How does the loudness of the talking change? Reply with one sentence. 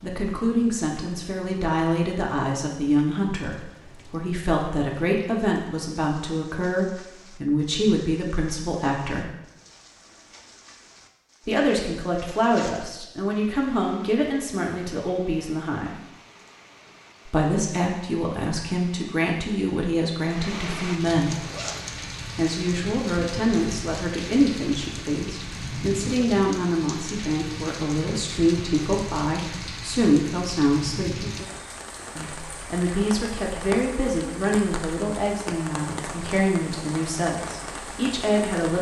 The volume of the talking stays about the same.